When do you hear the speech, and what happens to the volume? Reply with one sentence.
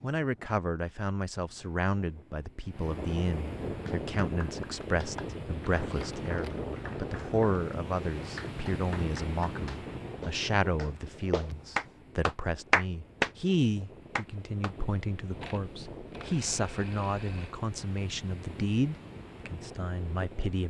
The speech can be heard from 0.0 to 20.6 s, at a steady volume.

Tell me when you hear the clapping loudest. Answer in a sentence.
The loudest moment of the clapping is at 13 seconds.